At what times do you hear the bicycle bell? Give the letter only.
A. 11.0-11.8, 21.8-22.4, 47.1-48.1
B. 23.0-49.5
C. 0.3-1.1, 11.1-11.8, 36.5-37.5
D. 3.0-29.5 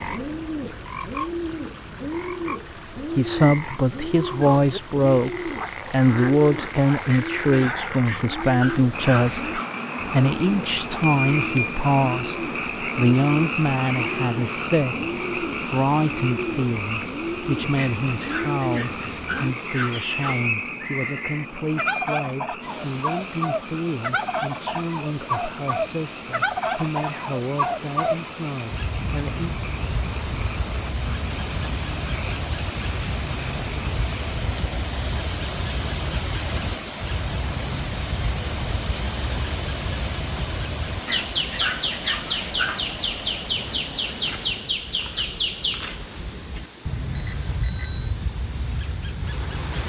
A.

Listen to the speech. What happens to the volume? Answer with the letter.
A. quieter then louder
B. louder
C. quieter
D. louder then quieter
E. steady
C.